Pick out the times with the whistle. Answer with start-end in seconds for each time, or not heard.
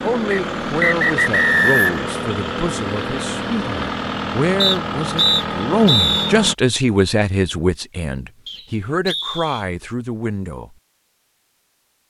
0.3-2.0, 4.6-6.3, 8.4-9.7.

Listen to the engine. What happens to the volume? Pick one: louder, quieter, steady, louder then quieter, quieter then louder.
steady.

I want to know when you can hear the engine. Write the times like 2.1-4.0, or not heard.
0.0-6.5.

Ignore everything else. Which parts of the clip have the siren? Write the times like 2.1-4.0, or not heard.
not heard.